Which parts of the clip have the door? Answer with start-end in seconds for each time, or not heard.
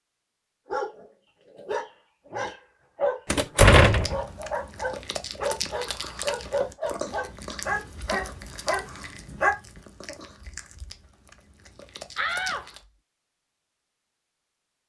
3.3-4.2, 12.2-12.7.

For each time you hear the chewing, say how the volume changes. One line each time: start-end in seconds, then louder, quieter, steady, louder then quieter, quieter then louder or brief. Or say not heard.
3.8-12.8 quieter.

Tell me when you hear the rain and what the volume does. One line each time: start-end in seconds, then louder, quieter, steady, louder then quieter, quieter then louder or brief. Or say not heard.
not heard.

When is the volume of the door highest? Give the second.
4 s.